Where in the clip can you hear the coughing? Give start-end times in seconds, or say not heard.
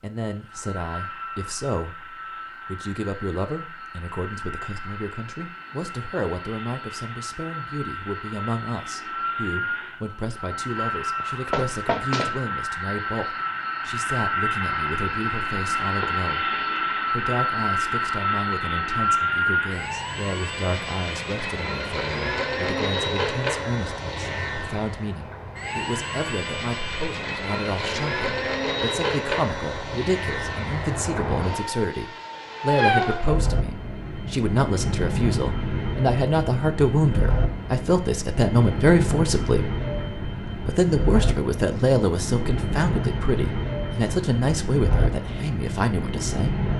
not heard.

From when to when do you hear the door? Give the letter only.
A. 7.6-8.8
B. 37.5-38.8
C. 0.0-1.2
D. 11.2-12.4
D.